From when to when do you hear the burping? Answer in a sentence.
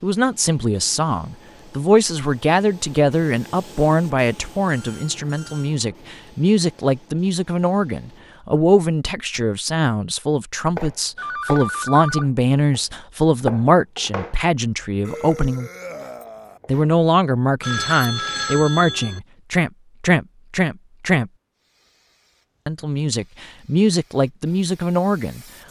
The burping can be heard from 15.1 to 16.6 s.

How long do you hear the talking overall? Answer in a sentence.
You can hear the talking for 23 seconds altogether.